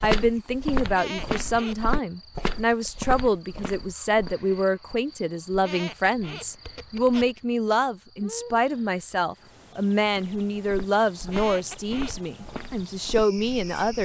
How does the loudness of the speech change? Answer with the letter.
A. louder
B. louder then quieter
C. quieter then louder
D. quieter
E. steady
E.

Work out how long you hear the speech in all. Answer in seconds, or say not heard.
14 s.